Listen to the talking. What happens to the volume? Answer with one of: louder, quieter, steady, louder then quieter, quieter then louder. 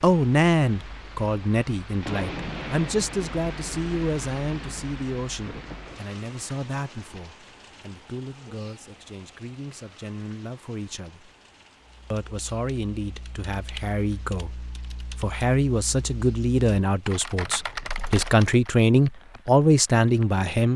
quieter then louder.